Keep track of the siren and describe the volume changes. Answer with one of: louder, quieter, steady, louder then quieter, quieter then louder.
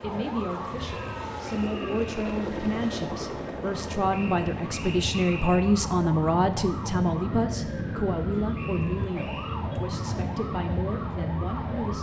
louder.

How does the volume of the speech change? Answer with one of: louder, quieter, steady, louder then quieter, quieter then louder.
louder then quieter.